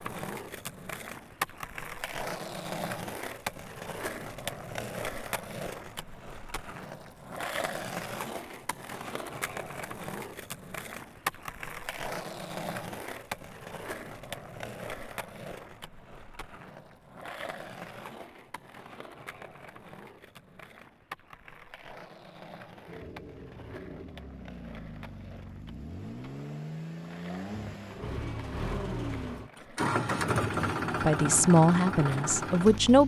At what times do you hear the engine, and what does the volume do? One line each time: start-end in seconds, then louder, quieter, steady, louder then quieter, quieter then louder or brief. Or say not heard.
22.9-33.0 louder.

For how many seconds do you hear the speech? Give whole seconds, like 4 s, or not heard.
2 s.